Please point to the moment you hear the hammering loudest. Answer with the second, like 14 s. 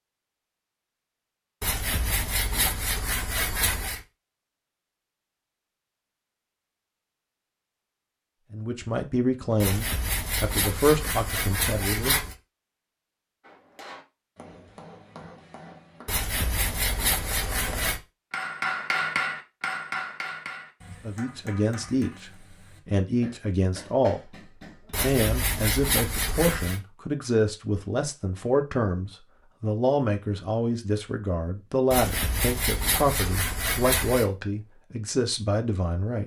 19 s.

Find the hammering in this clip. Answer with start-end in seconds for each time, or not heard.
13.4-25.1.